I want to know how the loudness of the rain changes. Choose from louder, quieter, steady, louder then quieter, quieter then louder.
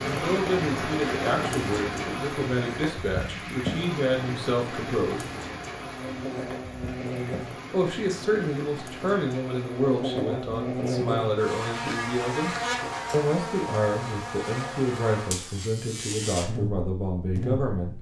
quieter.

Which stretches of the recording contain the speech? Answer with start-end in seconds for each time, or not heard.
0.0-5.2, 7.7-17.9.